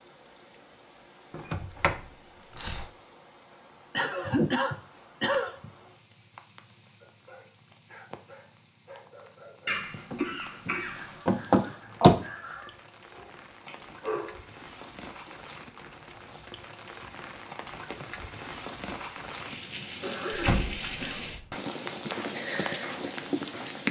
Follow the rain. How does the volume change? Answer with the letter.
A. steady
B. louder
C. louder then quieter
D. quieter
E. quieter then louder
B.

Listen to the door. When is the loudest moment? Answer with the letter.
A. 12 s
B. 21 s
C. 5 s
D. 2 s
A.